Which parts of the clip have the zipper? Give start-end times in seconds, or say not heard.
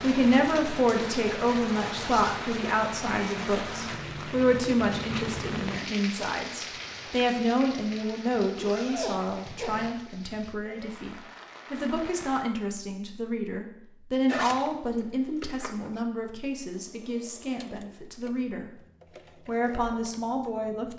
1.9-2.5, 8.6-10.1, 14.2-14.8, 15.4-16.0.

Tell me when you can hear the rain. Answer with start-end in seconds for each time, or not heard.
0.0-12.4.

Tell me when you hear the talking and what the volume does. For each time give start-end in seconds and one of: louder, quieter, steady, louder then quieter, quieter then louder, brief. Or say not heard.
0.0-18.8 quieter
19.4-20.9 brief.